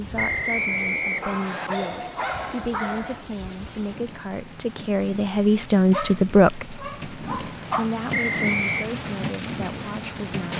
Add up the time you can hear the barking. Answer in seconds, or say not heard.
4 s.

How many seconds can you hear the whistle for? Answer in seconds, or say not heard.
2 s.